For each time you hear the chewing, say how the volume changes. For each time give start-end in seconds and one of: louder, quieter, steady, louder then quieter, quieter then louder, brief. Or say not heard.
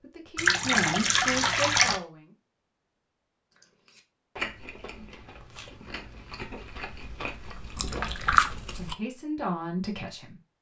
3.5-8.9 quieter then louder.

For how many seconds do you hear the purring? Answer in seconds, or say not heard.
not heard.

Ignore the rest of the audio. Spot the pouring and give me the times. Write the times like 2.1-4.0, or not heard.
0.3-2.0, 7.8-8.5.